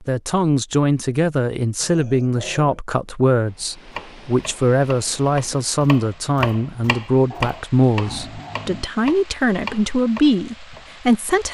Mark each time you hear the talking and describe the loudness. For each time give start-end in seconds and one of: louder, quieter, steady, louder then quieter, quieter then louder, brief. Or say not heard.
0.1-11.4 steady.